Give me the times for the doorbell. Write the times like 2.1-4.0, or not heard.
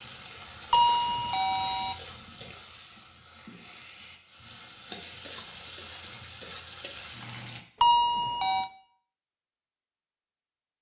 0.7-1.9, 7.8-8.7.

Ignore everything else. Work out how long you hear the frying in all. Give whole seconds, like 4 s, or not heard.
8 s.